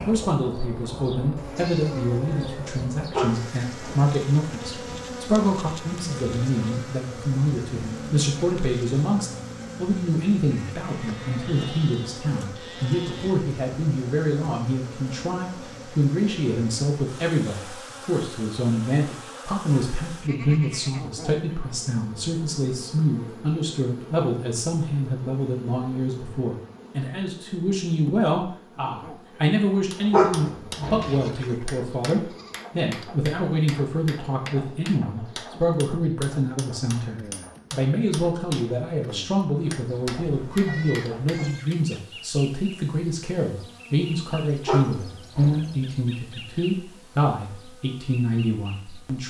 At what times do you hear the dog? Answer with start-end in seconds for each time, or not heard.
3.1-4.1, 30.1-31.2, 44.6-45.8.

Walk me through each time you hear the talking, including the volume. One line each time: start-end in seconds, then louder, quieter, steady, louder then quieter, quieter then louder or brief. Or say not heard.
0.0-49.2 steady.